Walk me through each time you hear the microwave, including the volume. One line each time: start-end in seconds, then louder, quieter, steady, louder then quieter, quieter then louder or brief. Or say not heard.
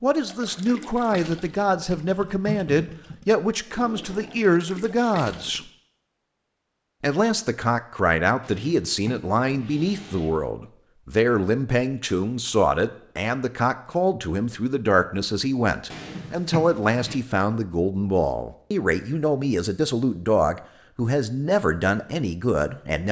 not heard.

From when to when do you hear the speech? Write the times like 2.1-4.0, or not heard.
0.0-5.6, 7.0-23.0.